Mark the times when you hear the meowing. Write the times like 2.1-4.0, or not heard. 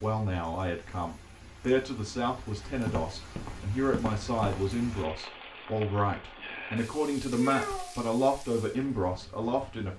7.3-8.0.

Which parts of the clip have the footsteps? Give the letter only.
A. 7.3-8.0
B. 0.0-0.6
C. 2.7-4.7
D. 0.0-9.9
C.